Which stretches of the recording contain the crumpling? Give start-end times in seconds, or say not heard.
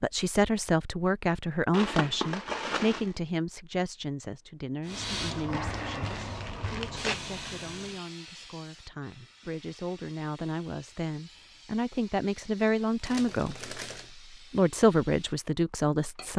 1.7-3.1, 5.5-7.2, 13.0-14.1.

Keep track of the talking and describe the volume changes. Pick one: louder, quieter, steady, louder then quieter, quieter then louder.
quieter then louder.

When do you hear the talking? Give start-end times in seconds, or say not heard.
0.0-16.3.